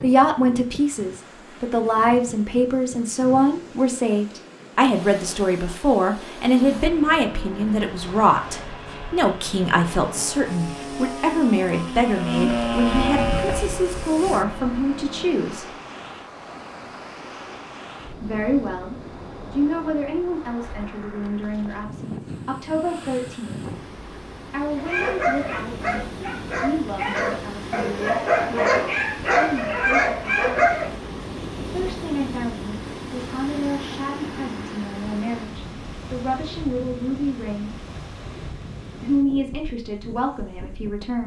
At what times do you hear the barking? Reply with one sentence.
The barking can be heard from 24.8 to 30.9 s.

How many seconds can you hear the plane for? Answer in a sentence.
You can hear the plane for 9 seconds altogether.